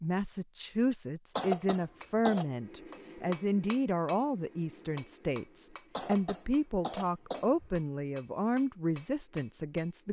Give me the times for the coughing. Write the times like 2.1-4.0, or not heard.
1.4-2.5, 6.0-7.7.